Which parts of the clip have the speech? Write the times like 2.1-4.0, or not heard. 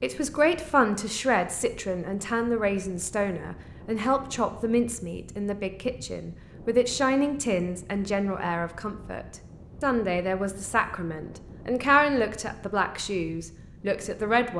0.0-14.5.